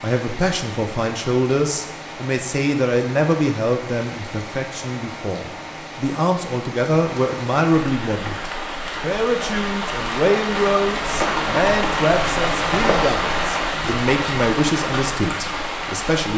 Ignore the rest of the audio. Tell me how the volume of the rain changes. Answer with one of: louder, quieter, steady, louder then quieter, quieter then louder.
louder.